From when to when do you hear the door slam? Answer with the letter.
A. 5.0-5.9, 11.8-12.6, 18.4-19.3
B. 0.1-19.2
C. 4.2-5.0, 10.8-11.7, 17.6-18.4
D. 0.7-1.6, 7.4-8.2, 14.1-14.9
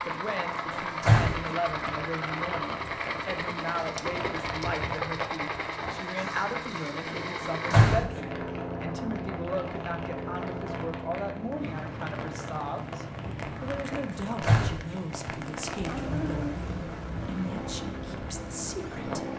D.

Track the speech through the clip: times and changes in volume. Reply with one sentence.
The speech can be heard from 0.1 to 19.2 s, at a steady volume.